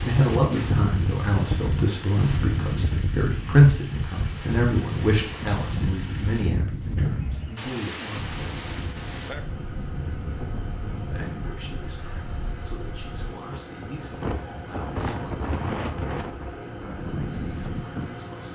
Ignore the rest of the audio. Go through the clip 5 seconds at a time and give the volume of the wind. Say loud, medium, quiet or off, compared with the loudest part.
loud, loud, medium, loud.